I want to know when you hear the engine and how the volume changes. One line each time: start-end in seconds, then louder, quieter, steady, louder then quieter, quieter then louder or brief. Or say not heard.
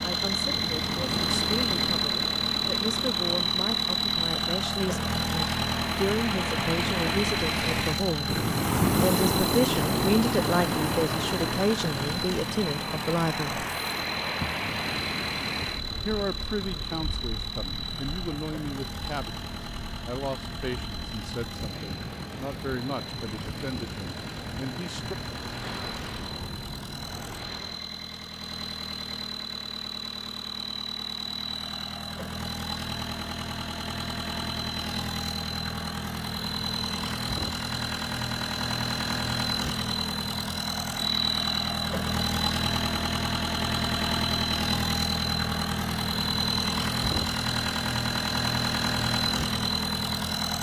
0.0-50.5 quieter then louder.